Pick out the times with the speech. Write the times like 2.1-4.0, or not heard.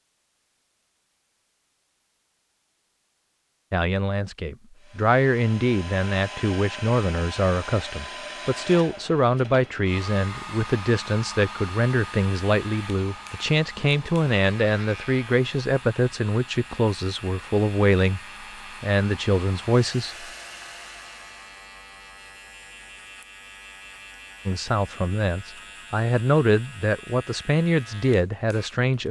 3.7-18.2, 18.8-20.2, 24.4-29.0.